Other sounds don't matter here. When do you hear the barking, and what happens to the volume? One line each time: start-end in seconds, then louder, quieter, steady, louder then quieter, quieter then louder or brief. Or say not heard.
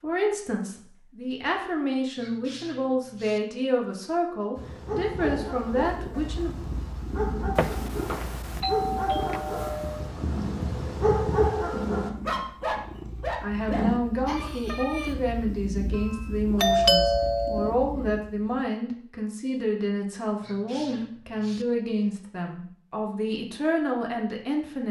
4.5-15.2 louder then quieter.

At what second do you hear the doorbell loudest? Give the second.
17 s.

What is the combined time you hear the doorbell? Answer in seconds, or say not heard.
4 s.